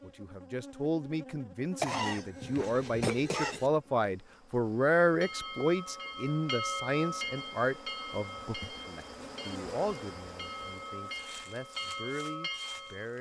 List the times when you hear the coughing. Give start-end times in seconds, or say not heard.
1.8-3.7.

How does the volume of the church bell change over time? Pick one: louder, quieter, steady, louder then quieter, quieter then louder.
quieter then louder.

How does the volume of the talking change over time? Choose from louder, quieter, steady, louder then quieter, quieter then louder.
louder then quieter.